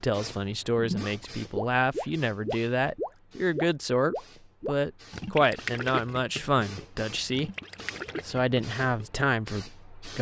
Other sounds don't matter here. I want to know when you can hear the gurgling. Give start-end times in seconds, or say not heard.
0.8-9.2.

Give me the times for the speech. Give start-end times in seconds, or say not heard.
0.0-7.5, 8.2-10.1.